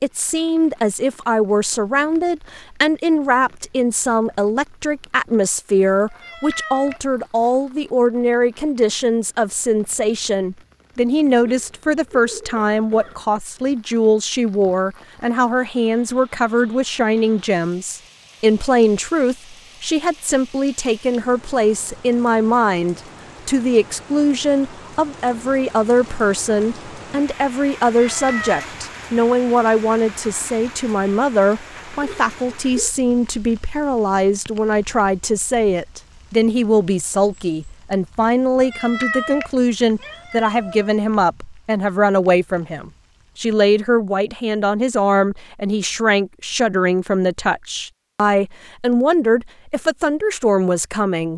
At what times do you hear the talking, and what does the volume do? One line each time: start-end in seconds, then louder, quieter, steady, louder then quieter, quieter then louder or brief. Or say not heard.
0.0-51.3 steady.